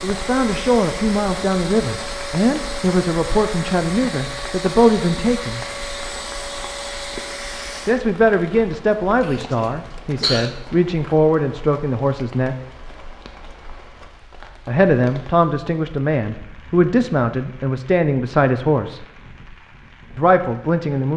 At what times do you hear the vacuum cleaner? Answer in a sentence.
You can hear the vacuum cleaner from 0.0 to 8.1 s.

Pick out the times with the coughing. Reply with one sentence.
The coughing can be heard from 9.2 to 10.6 s.